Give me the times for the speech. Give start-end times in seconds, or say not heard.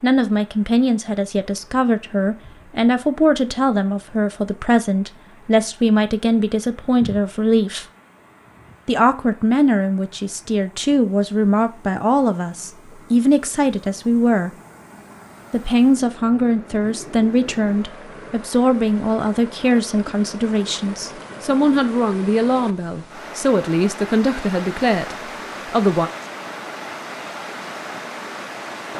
0.0-7.8, 8.8-14.5, 15.5-26.1.